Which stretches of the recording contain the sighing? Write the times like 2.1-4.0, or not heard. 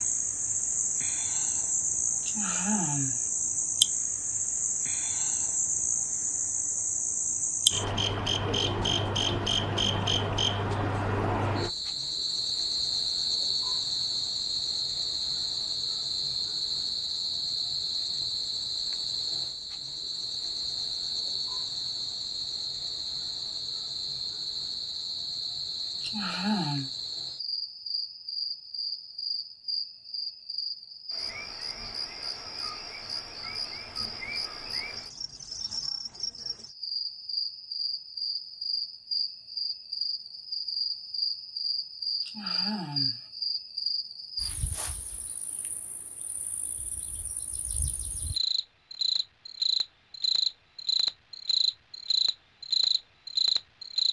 2.2-3.2, 26.0-26.9, 42.2-43.2.